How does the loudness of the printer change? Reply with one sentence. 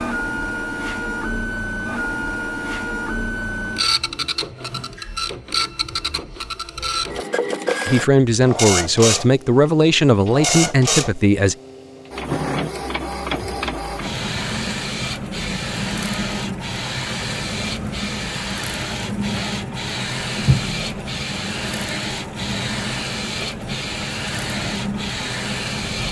The loudness of the printer stays about the same.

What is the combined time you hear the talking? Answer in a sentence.
The talking can be heard for 4 seconds in total.